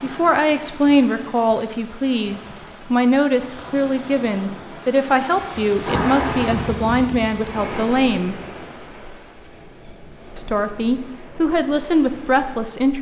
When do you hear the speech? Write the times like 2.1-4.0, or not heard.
0.0-8.3, 10.3-12.9.